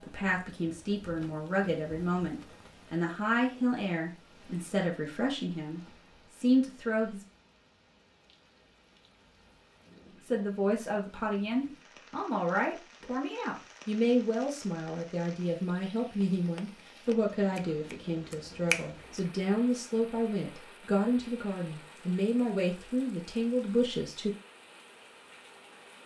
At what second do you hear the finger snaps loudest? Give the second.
19 s.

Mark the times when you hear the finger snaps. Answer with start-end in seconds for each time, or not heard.
17.6-19.2.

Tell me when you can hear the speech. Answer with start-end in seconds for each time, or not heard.
0.0-7.2, 10.2-24.3.